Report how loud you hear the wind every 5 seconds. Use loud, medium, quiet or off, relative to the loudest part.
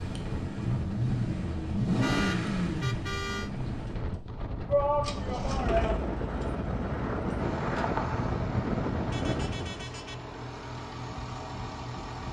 medium, loud, off.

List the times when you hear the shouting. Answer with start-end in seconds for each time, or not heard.
4.7-6.1.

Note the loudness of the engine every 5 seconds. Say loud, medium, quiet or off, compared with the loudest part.
loud, medium, medium.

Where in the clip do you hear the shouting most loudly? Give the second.
5 s.